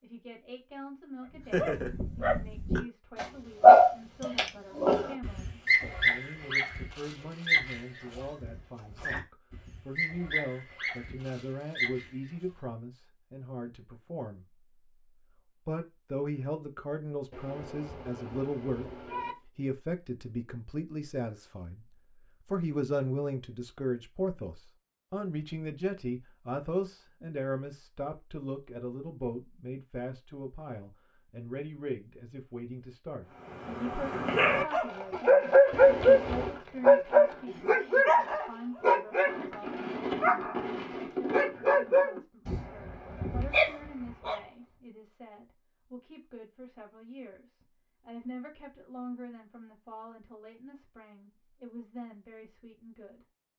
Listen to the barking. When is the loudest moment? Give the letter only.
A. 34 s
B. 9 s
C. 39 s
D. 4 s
D.